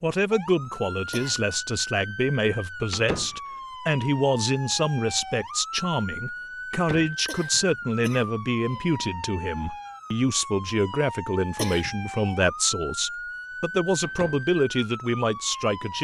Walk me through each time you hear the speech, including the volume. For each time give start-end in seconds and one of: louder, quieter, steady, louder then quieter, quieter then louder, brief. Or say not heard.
0.0-15.9 steady.